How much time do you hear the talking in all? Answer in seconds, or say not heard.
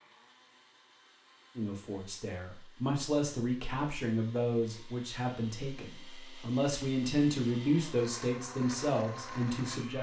8 s.